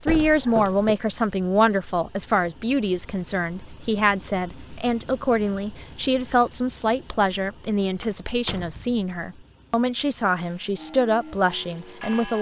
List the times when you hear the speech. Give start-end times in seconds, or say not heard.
0.0-12.3.